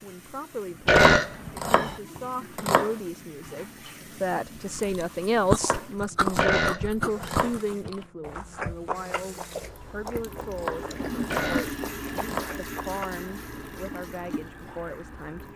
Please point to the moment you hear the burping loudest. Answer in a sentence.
The volume of the burping peaks at 1 second.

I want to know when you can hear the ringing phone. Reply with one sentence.
The ringing phone can't be heard in this clip.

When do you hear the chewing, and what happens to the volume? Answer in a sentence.
You can hear the chewing from 4.8 to 13.1 s, getting quieter.